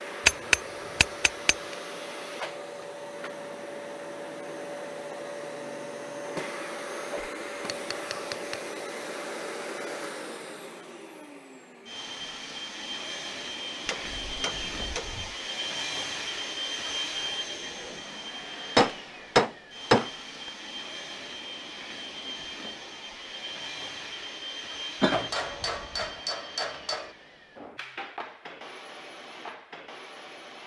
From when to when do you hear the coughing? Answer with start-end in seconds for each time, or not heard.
25.0-26.1.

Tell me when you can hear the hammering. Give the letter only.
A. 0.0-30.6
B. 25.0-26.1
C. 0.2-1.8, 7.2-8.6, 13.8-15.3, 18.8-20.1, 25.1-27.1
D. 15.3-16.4
C.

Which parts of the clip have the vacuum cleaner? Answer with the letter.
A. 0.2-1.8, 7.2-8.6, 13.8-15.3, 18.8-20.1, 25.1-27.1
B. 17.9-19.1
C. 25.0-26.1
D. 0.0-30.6
D.